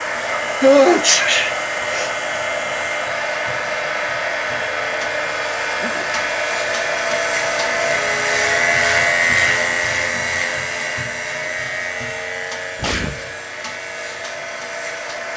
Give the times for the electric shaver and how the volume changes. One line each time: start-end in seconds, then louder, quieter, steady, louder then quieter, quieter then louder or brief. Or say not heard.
0.0-15.3 louder then quieter.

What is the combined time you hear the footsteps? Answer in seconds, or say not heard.
not heard.